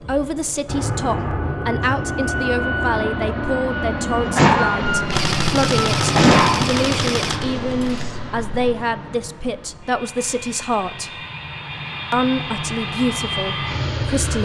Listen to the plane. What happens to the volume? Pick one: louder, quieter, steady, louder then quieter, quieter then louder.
quieter then louder.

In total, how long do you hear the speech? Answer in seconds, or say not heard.
13 s.